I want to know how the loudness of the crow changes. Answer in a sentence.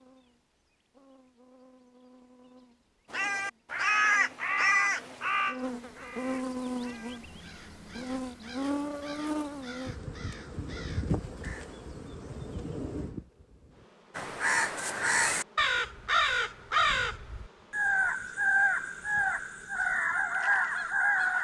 The loudness of the crow goes down, then up.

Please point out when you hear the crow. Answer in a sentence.
The crow can be heard from 3.1 to 11.8 s and from 14.2 to 21.3 s.